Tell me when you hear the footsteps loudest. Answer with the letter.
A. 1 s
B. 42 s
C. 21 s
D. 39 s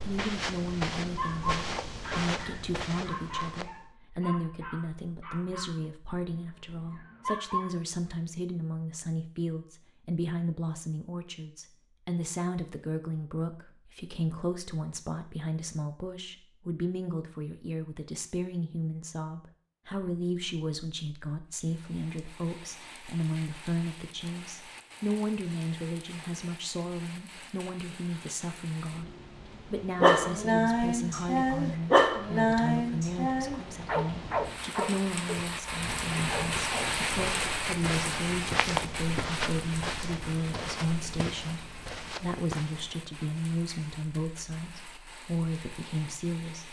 D.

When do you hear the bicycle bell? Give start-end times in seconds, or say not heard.
not heard.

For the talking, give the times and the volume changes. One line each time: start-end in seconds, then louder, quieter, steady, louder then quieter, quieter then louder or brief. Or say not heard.
0.0-46.6 steady.